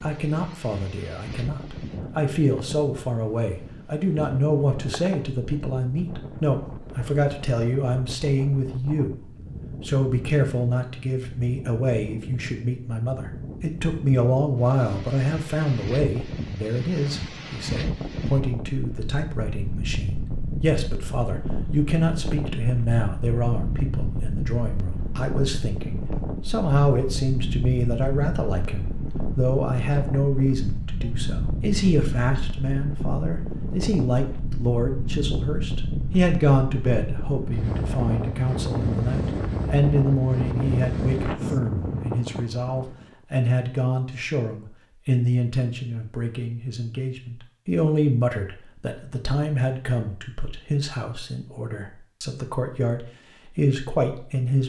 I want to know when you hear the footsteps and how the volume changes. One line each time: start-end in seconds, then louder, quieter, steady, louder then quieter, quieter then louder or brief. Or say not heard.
not heard.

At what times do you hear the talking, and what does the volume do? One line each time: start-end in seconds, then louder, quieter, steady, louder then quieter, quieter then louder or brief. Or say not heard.
0.0-54.6 steady.